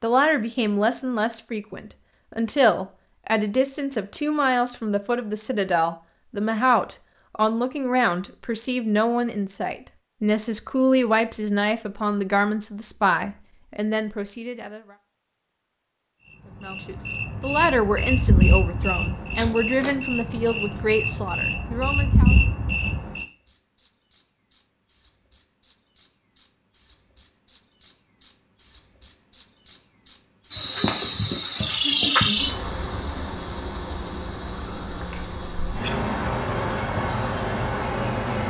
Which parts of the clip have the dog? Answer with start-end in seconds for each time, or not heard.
not heard.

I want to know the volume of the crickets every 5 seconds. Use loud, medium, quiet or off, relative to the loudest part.
off, off, off, medium, medium, loud, loud, medium.